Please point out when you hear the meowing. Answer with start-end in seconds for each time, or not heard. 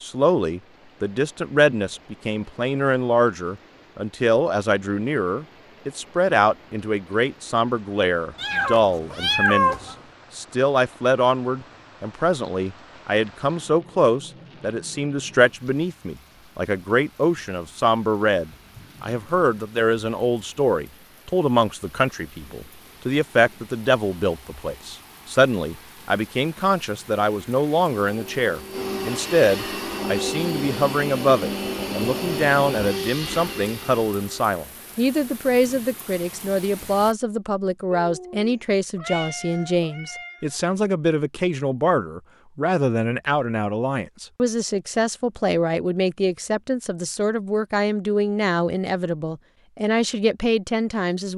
8.3-9.9, 38.0-40.5.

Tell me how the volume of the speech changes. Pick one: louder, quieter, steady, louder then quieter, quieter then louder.
steady.